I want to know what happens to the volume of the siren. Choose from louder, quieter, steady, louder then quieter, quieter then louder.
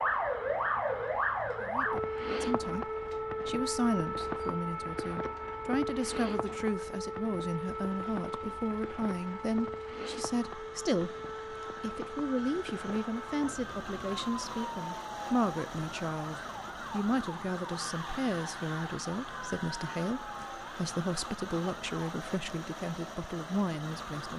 quieter.